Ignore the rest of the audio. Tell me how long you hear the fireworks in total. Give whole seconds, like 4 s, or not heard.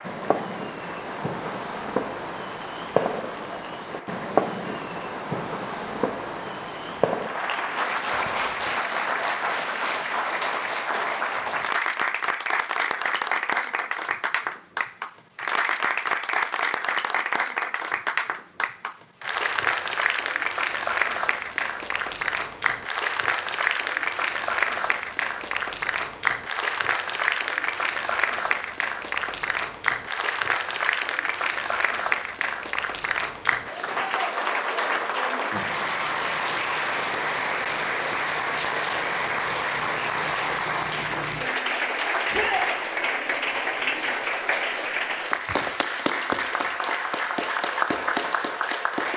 9 s.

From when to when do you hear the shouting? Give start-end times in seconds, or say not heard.
42.3-42.7.